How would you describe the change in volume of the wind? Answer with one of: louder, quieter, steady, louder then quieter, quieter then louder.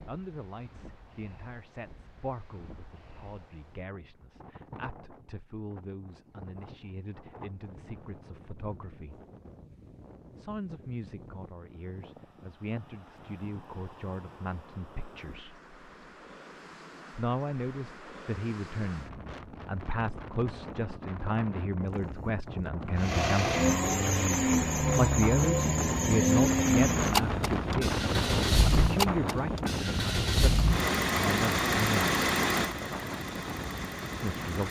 louder.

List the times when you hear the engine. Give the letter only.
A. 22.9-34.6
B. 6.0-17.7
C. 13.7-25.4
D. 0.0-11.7
A.